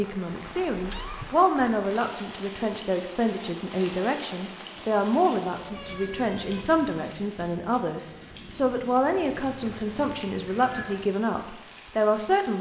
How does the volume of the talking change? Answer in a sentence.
The volume of the talking stays about the same.